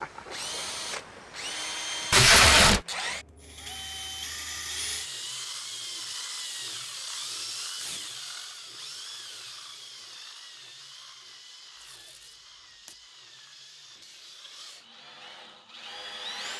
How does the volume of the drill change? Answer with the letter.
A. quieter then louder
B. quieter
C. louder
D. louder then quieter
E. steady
B.